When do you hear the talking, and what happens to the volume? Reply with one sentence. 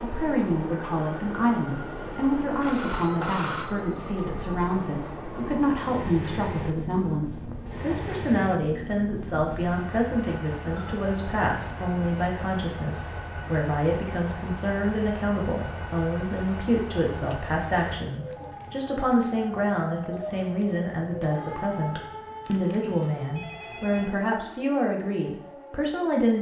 The talking can be heard from 0.0 to 26.3 s, at a steady volume.